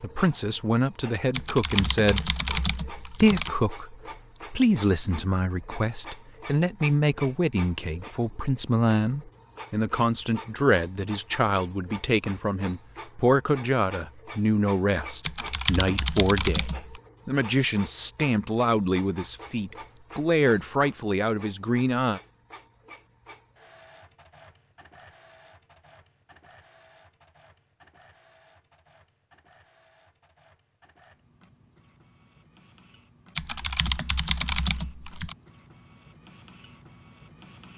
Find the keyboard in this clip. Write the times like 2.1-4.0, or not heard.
1.3-3.5, 15.2-17.0, 33.4-35.4.